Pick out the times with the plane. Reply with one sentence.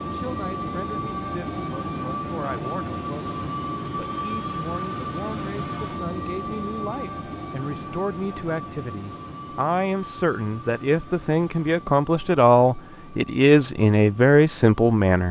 The plane can be heard from 0.0 to 15.2 s.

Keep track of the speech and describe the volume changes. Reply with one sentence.
The loudness of the speech goes up.